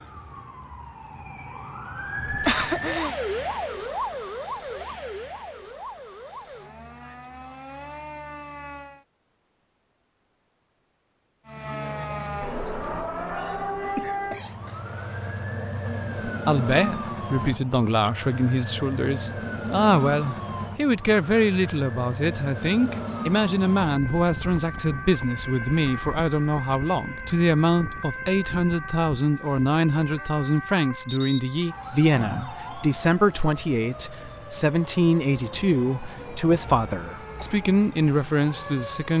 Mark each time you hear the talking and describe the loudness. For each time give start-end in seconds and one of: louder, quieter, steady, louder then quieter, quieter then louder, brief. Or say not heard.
16.2-39.1 steady.